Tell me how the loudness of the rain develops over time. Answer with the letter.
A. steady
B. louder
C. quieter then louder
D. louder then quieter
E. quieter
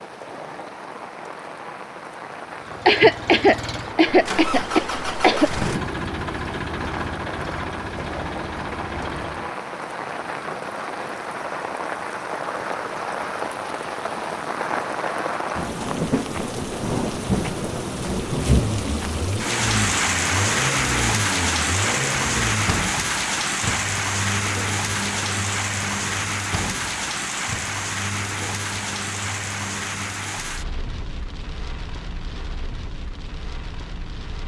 D.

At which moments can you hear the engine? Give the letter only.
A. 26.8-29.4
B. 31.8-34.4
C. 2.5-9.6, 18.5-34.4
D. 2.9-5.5
C.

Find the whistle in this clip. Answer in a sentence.
The whistle can't be heard in this clip.